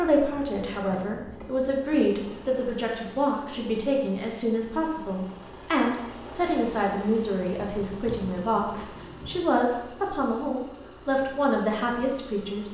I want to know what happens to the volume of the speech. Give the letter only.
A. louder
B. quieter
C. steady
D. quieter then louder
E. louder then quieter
C.